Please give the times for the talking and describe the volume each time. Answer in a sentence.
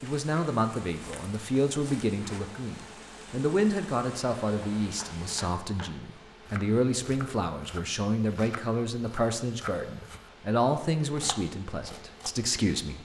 You can hear the talking from 0.0 to 12.9 s, at a steady volume.